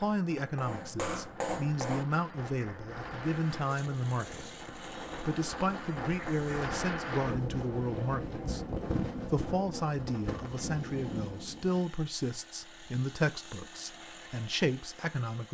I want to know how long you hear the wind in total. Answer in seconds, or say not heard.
12 s.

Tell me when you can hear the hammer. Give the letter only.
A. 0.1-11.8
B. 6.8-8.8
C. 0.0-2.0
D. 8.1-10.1
C.